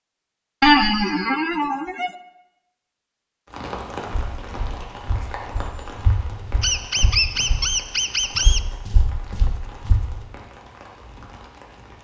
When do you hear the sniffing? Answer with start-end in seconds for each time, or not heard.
not heard.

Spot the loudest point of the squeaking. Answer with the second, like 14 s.
1 s.